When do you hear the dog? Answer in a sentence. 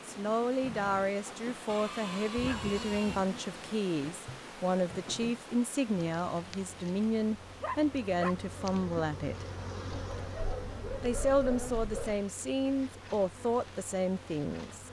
The dog can be heard from 1.6 to 3.2 s, from 7.4 to 8.3 s and from 9.9 to 12.2 s.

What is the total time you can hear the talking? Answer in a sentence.
The talking can be heard for 13 seconds in total.